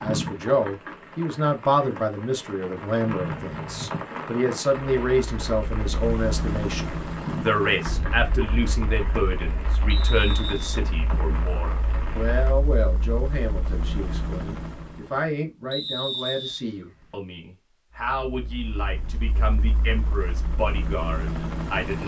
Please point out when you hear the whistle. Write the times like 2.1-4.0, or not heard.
3.0-3.9, 9.8-10.8, 15.7-17.1.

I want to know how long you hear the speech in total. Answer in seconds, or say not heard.
22 s.